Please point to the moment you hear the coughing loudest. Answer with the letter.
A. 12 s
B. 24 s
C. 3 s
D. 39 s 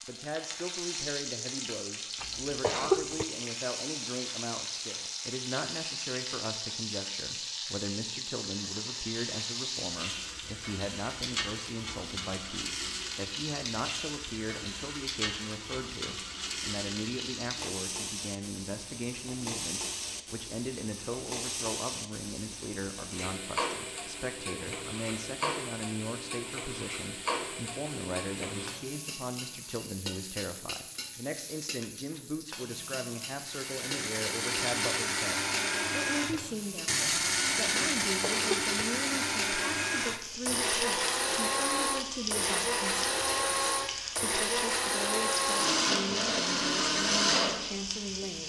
C.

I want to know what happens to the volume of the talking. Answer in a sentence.
The loudness of the talking stays about the same.